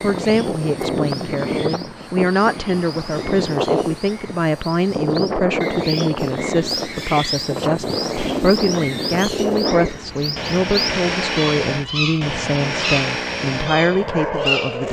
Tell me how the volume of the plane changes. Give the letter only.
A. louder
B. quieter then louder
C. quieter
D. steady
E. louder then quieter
D.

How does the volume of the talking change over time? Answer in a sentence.
The volume of the talking stays about the same.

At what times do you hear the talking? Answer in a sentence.
The talking can be heard from 0.0 to 14.8 s.